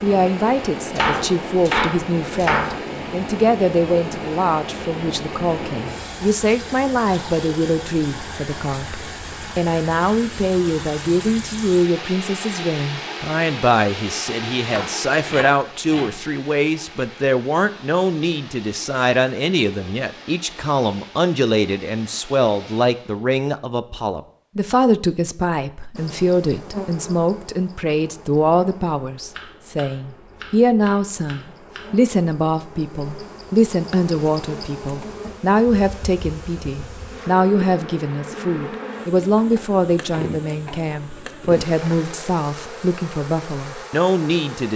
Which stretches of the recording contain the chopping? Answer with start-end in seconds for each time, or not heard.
0.9-2.8, 14.6-16.1, 29.3-31.9, 39.4-40.9.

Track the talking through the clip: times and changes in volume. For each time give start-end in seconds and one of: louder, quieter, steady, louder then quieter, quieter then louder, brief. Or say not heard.
0.0-44.7 steady.